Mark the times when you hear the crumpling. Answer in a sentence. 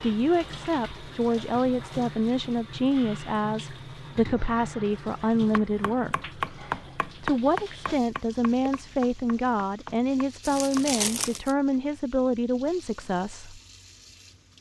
You can hear the crumpling from 10.4 to 11.6 s.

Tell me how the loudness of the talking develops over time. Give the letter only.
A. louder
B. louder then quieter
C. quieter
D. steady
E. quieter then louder
D.